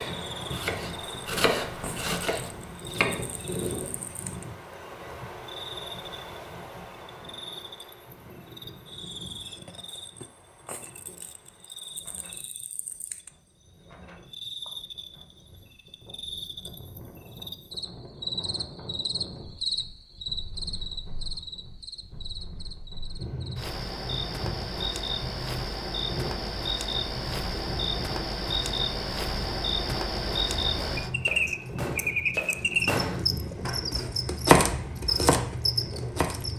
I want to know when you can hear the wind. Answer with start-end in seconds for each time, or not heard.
0.0-36.5.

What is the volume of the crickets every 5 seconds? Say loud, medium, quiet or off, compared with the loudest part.
quiet, quiet, quiet, medium, medium, loud, loud, loud.